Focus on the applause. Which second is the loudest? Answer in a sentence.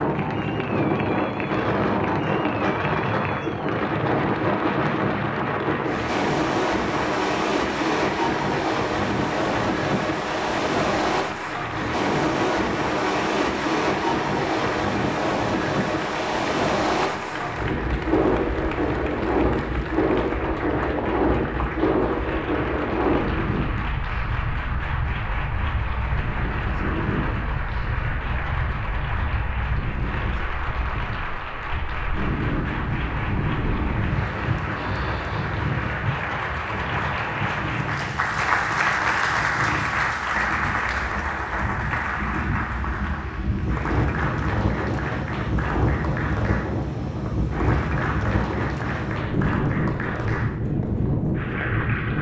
The loudest moment of the applause is at 39 seconds.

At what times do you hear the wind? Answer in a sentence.
The wind can be heard from 0.0 to 52.1 s.